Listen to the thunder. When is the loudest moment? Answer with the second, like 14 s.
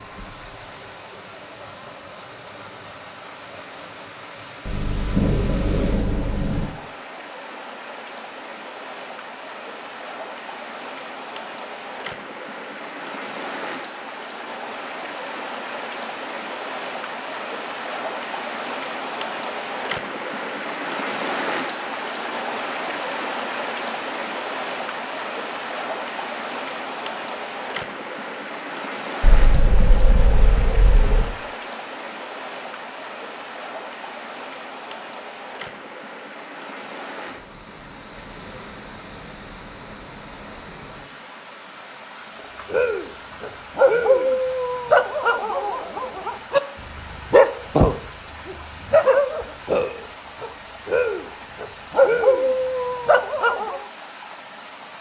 5 s.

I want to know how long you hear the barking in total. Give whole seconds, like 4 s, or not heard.
11 s.